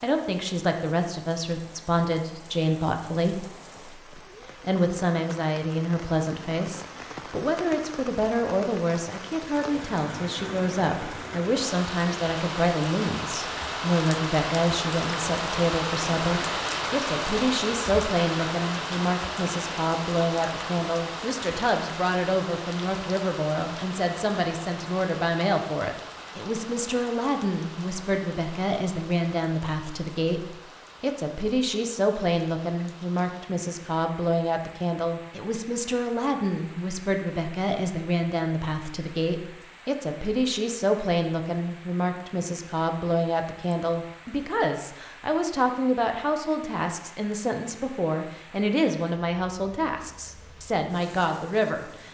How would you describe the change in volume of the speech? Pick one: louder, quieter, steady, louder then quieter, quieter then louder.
steady.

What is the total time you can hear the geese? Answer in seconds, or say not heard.
not heard.